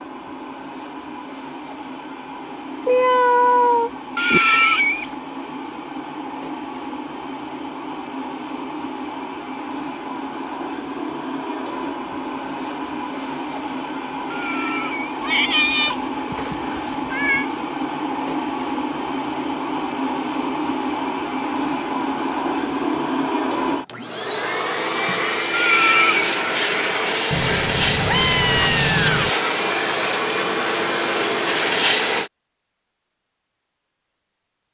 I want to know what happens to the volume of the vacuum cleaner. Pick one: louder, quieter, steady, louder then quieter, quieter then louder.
louder.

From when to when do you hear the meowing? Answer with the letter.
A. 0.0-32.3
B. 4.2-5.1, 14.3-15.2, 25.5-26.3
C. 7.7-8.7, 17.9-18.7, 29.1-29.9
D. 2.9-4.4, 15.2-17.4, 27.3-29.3
D.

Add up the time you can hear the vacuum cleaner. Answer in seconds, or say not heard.
32 s.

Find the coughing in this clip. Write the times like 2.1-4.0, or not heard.
4.2-5.1, 14.3-15.2, 25.5-26.3.